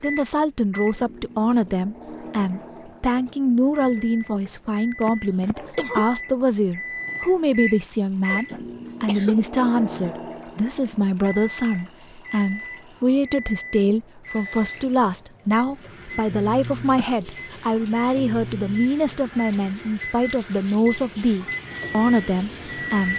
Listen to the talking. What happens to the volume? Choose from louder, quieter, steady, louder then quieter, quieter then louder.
steady.